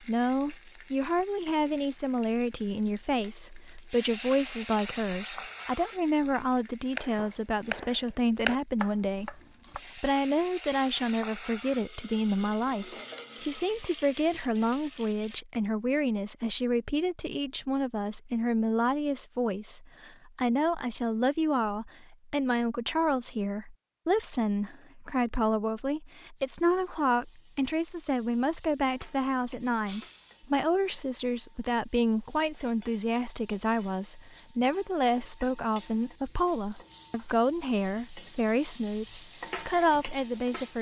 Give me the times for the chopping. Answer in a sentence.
You can hear the chopping from 7.0 to 9.8 s.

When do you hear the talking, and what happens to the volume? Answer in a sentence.
The talking can be heard from 0.0 to 40.7 s, at a steady volume.